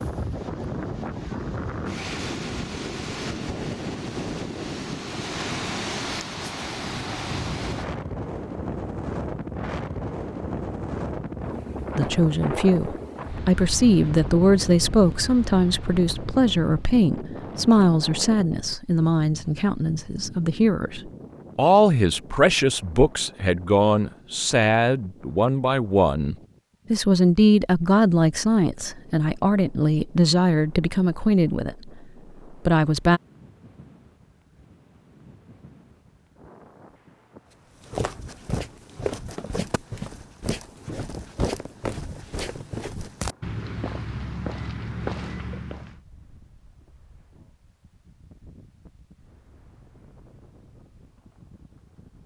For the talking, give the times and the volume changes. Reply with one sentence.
You can hear the talking from 11.9 to 31.9 s, at a steady volume; and briefly from 32.6 to 33.2 s.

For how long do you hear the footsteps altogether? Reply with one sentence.
You can hear the footsteps for 8 seconds altogether.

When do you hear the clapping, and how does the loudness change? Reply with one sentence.
The clapping can't be heard in this clip.